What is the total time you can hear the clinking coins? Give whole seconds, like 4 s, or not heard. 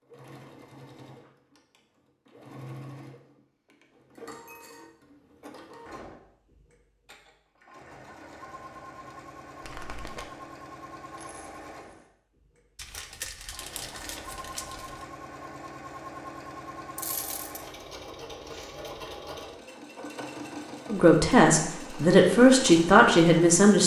2 s.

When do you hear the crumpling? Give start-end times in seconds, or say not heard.
9.6-10.2, 12.8-15.1.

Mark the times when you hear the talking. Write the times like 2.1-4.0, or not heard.
20.9-23.8.